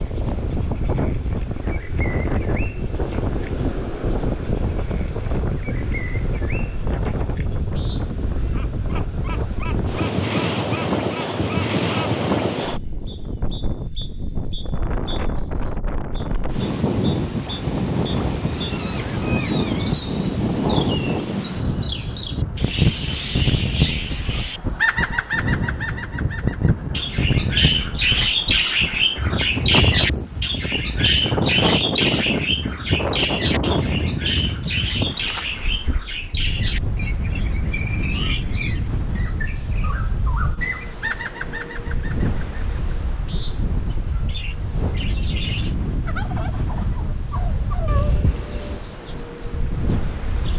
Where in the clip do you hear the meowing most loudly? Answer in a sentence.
The volume of the meowing peaks at 48 seconds.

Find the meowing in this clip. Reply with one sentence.
The meowing can be heard from 18.4 to 19.9 s and from 47.9 to 48.8 s.